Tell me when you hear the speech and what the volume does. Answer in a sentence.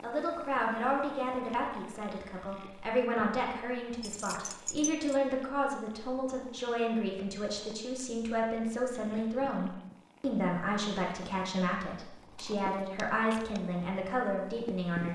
The speech can be heard from 0.0 to 15.0 s, at a steady volume.